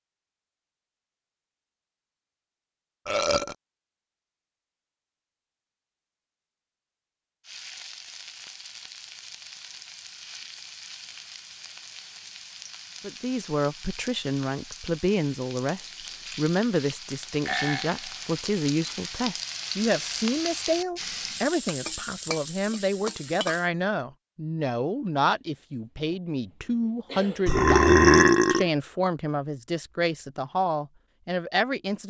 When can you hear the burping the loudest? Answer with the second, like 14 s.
28 s.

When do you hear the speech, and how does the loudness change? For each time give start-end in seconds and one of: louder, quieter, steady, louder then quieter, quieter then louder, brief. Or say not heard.
13.0-32.0 steady.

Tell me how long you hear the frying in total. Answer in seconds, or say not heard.
16 s.